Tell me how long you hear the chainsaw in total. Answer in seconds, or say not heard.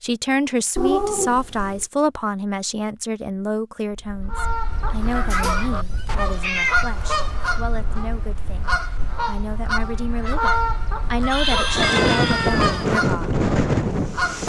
not heard.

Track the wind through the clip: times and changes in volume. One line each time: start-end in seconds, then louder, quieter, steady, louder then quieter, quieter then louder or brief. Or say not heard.
3.9-14.4 louder.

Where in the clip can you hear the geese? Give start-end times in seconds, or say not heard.
4.3-14.4.